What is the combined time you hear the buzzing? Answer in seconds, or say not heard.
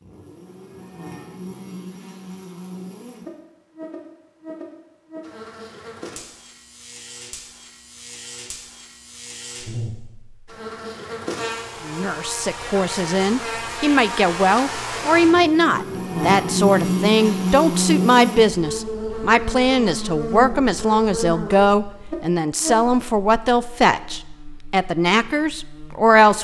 26 s.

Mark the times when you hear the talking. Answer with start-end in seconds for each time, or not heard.
11.8-26.3.